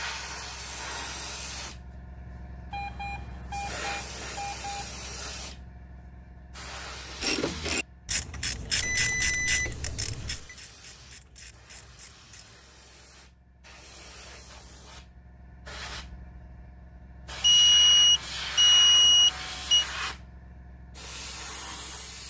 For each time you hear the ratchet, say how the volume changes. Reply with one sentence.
You can hear the ratchet from 7.2 to 12.6 s, getting quieter.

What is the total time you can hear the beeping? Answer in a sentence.
You can hear the beeping for 7 seconds altogether.